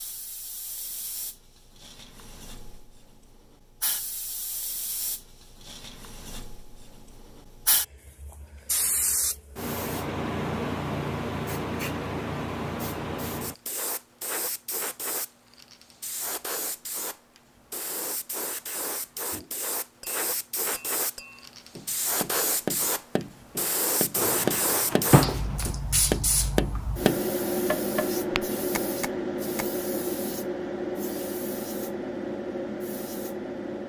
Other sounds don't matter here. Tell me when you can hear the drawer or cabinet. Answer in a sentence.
You can hear the drawer or cabinet from 24.1 to 25.6 s.